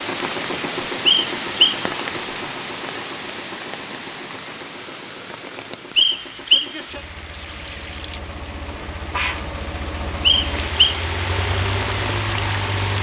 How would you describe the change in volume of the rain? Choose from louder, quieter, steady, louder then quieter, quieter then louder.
quieter then louder.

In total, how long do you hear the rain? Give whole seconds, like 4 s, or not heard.
13 s.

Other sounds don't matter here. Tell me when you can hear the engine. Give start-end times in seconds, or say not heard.
0.0-12.9.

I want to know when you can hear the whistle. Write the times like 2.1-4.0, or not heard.
1.1-1.8, 6.0-6.7, 10.2-11.0.